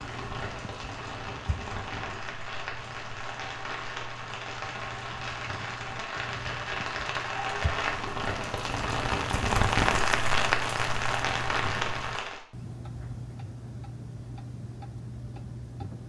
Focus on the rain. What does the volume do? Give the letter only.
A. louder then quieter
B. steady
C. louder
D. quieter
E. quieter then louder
C.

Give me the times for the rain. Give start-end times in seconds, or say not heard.
0.0-12.4.